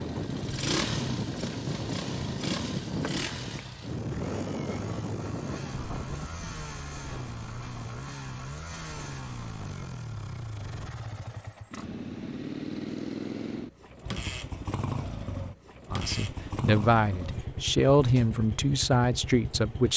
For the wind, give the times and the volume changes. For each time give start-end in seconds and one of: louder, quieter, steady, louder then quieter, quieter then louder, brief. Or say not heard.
0.0-10.9 quieter.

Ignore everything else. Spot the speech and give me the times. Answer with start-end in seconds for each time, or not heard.
15.9-19.9.